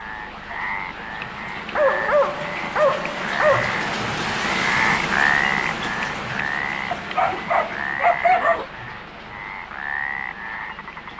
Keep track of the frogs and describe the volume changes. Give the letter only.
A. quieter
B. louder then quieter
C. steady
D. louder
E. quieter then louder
B.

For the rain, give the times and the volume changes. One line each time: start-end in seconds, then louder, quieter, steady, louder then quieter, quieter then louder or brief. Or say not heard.
0.0-11.1 louder then quieter.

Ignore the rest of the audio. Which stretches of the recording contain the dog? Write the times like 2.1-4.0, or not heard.
1.8-3.8, 6.9-8.7.